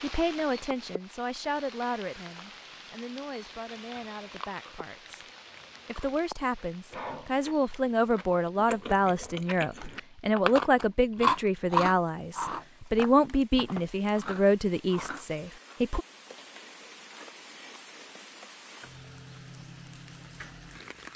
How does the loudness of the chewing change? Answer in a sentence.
The loudness of the chewing goes up, then down.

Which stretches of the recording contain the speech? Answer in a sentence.
You can hear the speech from 0.0 to 5.2 s and from 5.8 to 16.1 s.